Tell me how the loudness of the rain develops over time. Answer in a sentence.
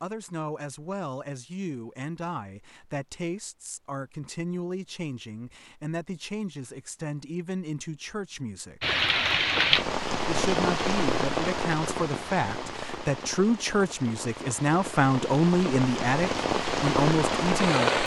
The loudness of the rain goes down, then up.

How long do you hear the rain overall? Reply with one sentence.
The rain can be heard for 9 seconds in total.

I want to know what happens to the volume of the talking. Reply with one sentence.
The volume of the talking goes up.